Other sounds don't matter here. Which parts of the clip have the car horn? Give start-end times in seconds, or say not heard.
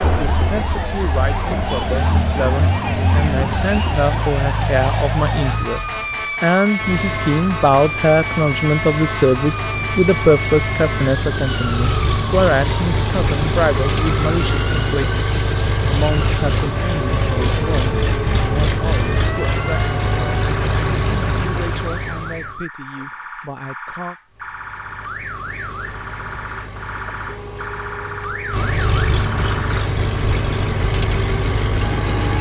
27.1-28.6.